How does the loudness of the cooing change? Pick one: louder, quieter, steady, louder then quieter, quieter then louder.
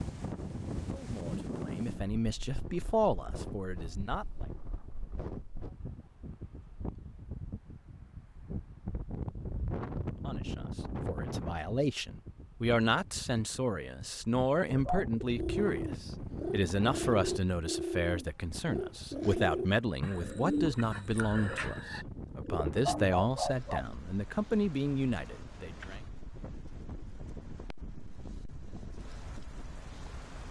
steady.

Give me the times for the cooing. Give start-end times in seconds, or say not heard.
14.7-23.9.